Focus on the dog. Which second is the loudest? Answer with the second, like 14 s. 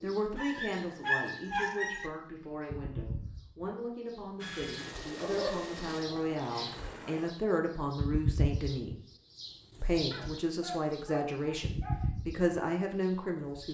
1 s.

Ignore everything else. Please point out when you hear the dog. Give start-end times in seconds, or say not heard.
0.3-2.1, 5.2-5.8, 10.1-12.0.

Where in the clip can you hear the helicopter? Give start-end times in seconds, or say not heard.
4.3-7.3.